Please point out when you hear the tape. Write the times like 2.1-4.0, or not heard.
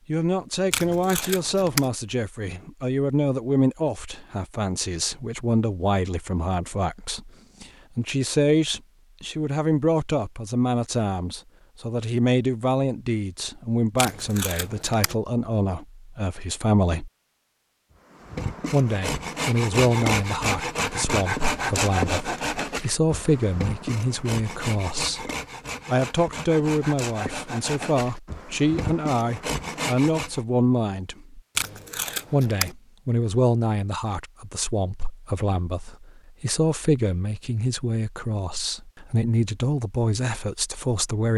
0.7-1.9, 13.9-15.2, 31.6-32.8.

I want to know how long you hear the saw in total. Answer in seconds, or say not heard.
12 s.